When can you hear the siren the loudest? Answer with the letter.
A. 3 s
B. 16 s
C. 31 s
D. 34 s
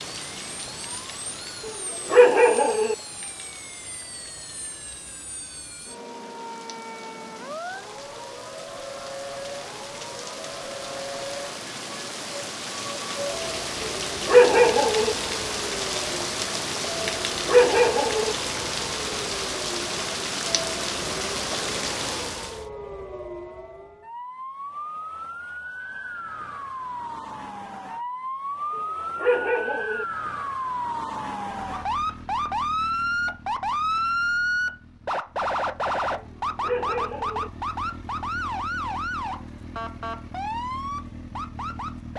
D.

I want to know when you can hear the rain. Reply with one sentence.
The rain can be heard from 0.0 to 22.6 s.